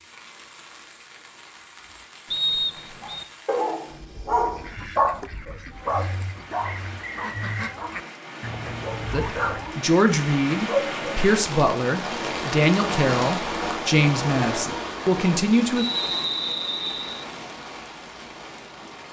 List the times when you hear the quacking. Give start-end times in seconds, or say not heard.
4.4-9.8.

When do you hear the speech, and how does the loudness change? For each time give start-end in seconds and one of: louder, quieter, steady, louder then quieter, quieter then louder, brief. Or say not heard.
9.1-15.8 steady.